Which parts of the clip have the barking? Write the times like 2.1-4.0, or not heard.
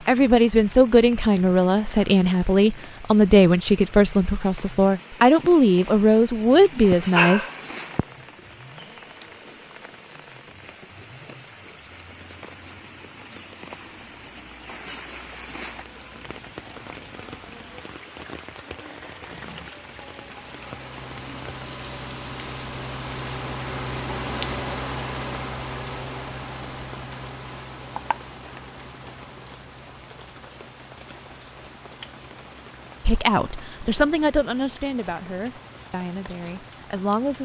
6.6-8.1.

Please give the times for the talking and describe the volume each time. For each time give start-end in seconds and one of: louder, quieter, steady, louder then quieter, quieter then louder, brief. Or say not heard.
0.1-7.5 steady
33.0-37.3 quieter.